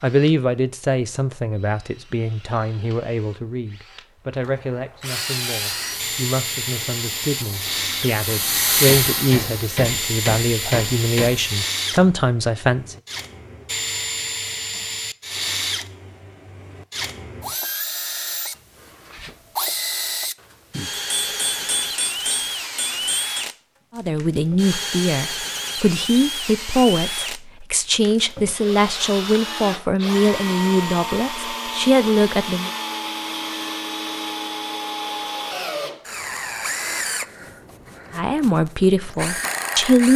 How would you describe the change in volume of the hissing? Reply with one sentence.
The volume of the hissing goes up, then down.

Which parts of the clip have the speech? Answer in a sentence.
The speech can be heard from 0.0 to 12.9 s, from 23.9 to 32.7 s and from 38.1 to 40.1 s.